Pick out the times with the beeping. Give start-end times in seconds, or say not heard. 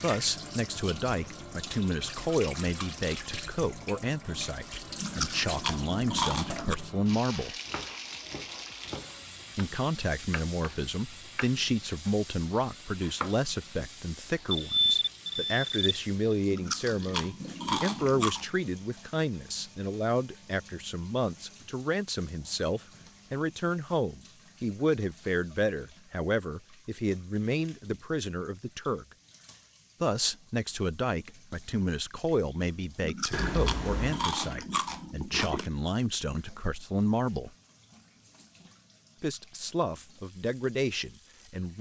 14.5-15.8, 33.3-34.2.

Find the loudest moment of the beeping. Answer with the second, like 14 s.
15 s.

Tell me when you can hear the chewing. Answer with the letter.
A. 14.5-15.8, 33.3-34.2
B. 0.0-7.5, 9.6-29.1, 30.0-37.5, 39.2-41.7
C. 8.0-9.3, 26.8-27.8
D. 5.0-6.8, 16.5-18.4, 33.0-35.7
D.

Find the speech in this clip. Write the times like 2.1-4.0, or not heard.
0.0-7.5, 9.6-29.1, 30.0-37.5, 39.2-41.7.